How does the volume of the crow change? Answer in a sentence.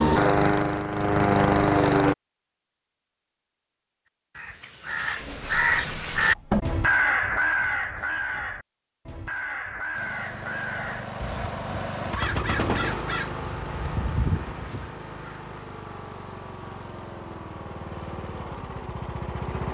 The loudness of the crow goes down.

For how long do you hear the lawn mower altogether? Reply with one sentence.
The lawn mower can be heard for 12 seconds in total.